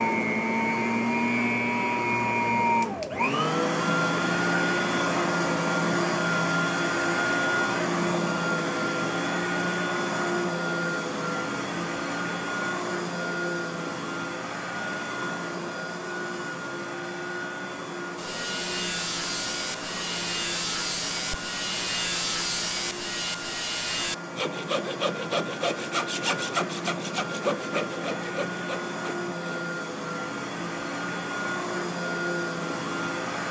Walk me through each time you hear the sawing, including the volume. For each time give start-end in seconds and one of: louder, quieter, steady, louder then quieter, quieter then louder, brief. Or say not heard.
18.1-29.6 steady.